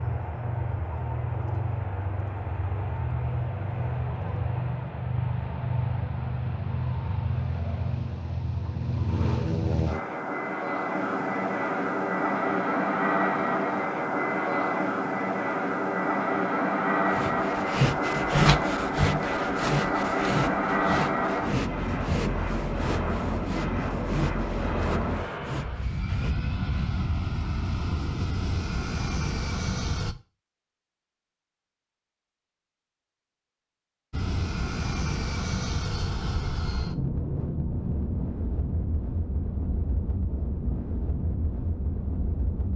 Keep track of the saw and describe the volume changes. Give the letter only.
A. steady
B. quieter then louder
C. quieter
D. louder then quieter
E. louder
C.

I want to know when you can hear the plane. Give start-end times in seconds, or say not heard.
0.0-30.1, 34.1-42.7.